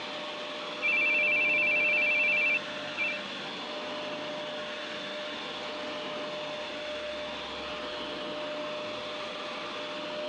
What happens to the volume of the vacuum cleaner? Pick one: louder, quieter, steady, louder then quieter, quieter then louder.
steady.